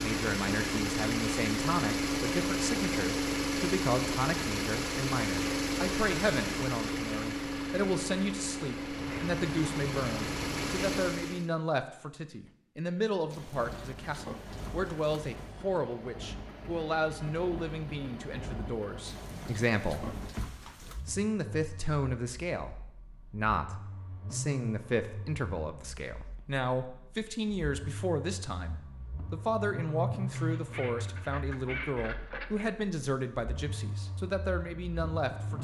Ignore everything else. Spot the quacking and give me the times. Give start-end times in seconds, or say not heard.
8.9-10.9, 30.3-32.7.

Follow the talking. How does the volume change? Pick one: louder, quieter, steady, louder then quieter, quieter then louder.
steady.